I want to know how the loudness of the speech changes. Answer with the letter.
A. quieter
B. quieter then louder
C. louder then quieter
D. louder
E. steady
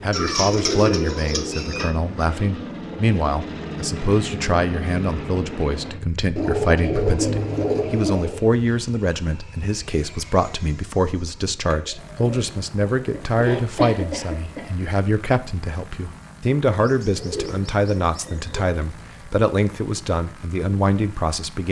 E.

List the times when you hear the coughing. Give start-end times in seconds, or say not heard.
13.1-14.9.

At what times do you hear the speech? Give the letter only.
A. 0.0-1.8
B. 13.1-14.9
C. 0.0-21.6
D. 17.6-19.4
C.